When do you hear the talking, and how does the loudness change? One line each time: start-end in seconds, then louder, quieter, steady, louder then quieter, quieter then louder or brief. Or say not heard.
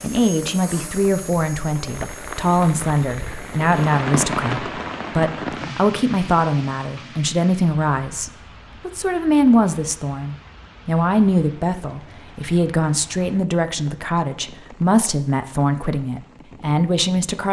0.0-17.4 steady.